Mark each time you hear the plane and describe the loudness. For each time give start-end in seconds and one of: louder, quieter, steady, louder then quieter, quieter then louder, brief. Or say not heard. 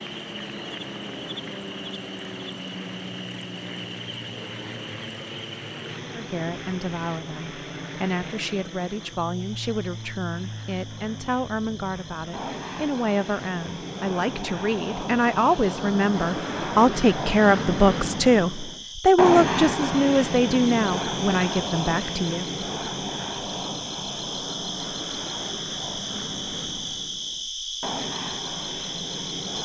0.0-29.6 louder then quieter.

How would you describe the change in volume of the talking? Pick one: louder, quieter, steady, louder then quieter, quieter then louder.
louder.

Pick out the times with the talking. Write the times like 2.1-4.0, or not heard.
6.2-22.4.